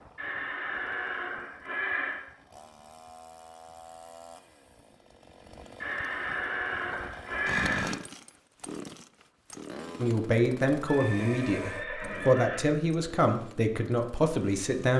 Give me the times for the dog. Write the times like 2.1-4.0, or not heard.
not heard.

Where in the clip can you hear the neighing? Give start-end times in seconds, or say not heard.
0.1-2.2, 5.8-8.0, 10.8-12.7.